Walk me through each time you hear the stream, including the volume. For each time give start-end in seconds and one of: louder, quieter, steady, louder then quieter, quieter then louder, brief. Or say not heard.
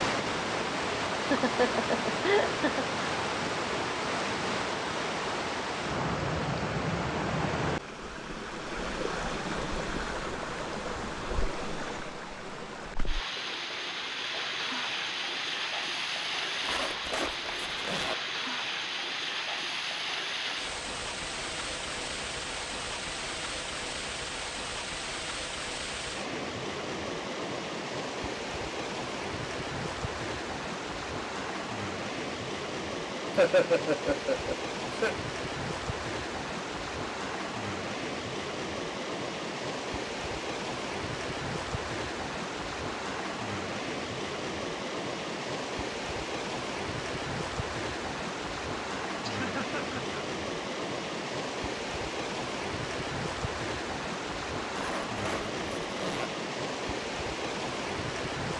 0.0-58.5 steady.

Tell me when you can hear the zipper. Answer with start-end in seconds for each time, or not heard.
16.6-18.1, 54.8-56.3.